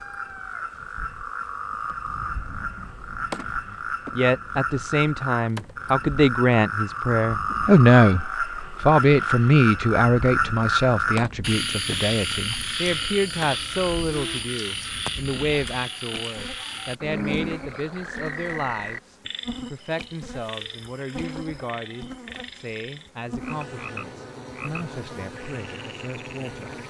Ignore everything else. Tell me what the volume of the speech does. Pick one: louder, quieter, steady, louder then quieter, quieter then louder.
quieter.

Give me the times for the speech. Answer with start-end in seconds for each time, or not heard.
3.6-26.7.